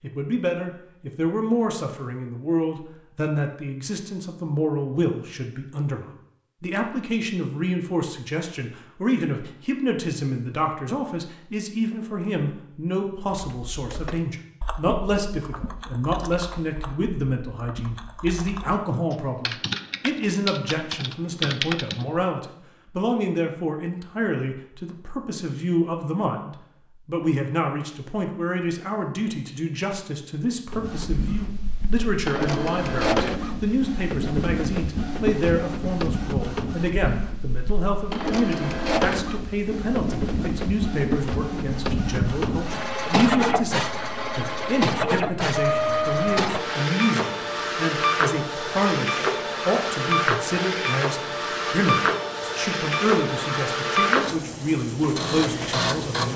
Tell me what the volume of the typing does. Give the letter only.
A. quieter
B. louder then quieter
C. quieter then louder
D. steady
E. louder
E.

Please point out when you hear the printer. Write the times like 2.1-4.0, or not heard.
30.7-56.3.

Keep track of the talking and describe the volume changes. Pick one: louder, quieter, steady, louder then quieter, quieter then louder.
steady.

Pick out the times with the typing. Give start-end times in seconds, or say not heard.
13.3-22.2.